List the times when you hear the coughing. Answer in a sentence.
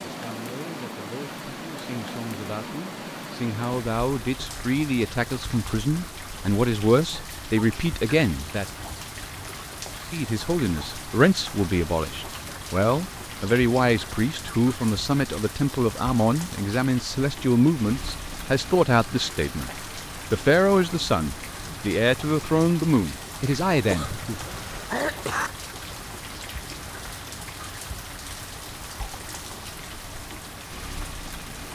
You can hear the coughing from 23.9 to 25.5 s.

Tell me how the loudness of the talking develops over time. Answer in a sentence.
The volume of the talking goes up.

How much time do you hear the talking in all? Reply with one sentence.
You can hear the talking for 23 seconds altogether.